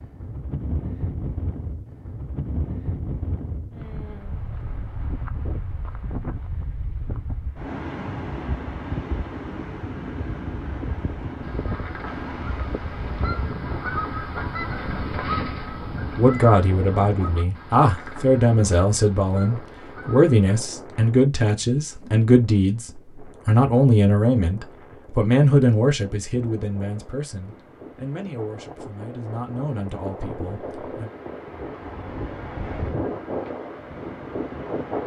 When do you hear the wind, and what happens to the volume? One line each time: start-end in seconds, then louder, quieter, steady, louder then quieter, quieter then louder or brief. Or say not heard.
0.0-35.0 quieter then louder.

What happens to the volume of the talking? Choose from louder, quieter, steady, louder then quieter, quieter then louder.
quieter.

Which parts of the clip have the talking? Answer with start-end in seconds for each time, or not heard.
16.1-31.1.